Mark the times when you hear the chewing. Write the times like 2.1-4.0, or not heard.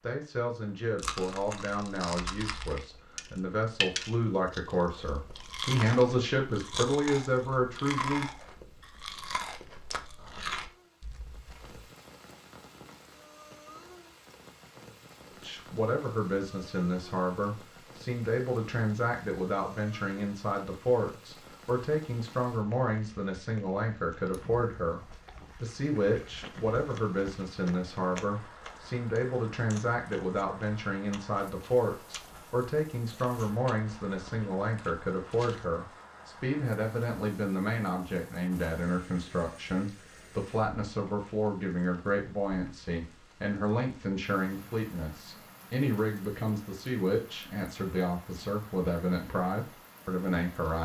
0.9-11.8, 24.9-35.9.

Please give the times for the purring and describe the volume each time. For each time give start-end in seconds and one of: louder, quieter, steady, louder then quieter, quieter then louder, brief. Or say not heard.
not heard.